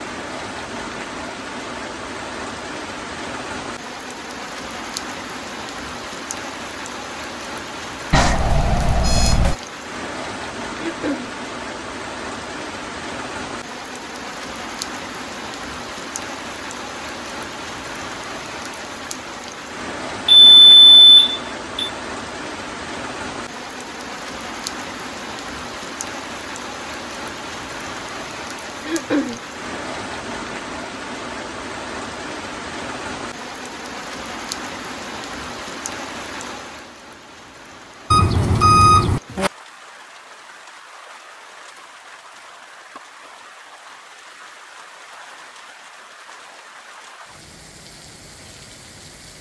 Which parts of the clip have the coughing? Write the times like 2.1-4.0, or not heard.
10.8-11.3, 28.8-29.4.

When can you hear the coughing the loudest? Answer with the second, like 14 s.
29 s.